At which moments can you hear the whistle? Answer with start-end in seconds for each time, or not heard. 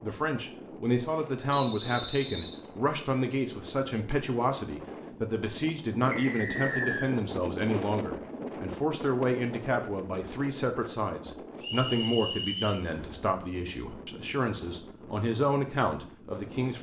1.5-2.6, 6.1-7.2, 11.6-12.8.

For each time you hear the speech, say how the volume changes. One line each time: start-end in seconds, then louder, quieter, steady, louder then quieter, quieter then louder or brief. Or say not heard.
0.0-16.7 steady.